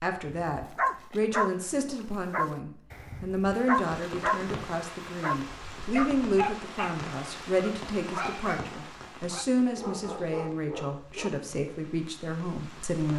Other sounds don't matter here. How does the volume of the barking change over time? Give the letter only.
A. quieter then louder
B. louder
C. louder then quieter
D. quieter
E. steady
D.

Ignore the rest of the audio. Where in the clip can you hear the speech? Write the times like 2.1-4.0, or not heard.
0.0-13.1.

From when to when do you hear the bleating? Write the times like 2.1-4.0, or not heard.
not heard.